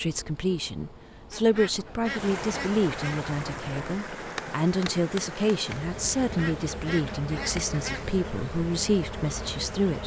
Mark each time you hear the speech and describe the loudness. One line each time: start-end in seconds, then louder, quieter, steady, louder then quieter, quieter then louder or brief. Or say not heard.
0.0-10.0 steady.